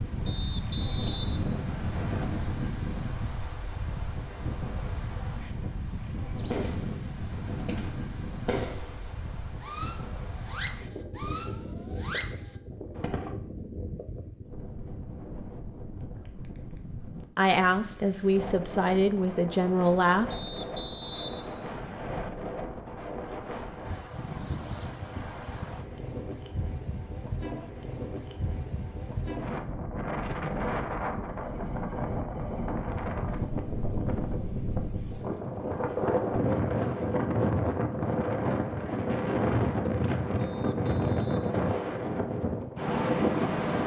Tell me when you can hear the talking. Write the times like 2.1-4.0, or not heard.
17.4-20.4.